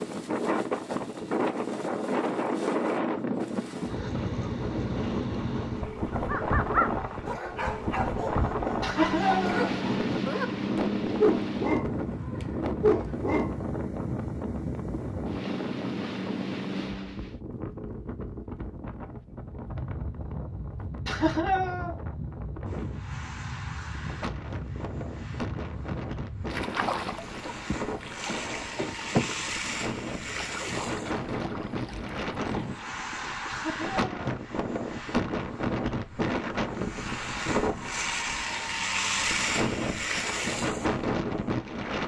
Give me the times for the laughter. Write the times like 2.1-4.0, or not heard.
8.8-9.7, 21.1-21.9, 33.5-34.1.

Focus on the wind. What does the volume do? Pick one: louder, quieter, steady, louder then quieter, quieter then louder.
quieter then louder.